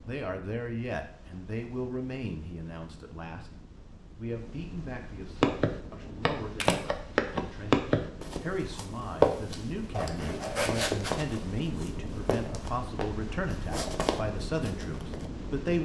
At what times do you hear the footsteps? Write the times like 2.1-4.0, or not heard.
5.4-15.2.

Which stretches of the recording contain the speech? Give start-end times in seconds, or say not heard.
0.1-15.8.